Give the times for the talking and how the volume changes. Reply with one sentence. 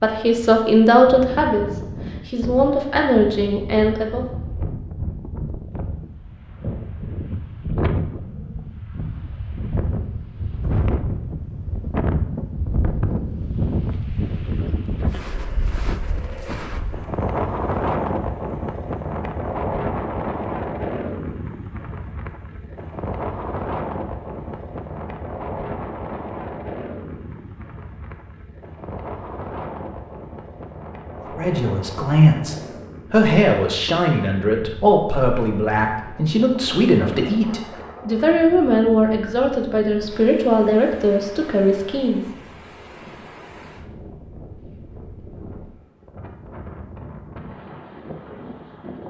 You can hear the talking from 0.0 to 4.2 s, getting quieter then louder; and from 31.4 to 42.2 s, at a steady volume.